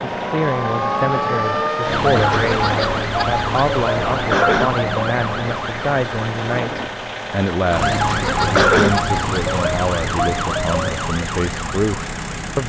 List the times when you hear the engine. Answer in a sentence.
You can hear the engine from 0.0 to 12.6 s.